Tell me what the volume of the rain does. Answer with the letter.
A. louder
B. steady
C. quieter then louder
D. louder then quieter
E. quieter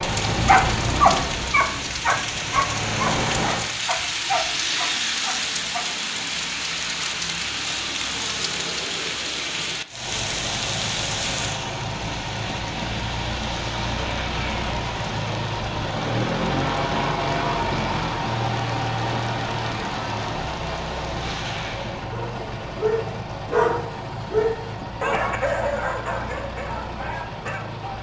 E.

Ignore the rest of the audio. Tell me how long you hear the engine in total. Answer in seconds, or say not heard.
22 s.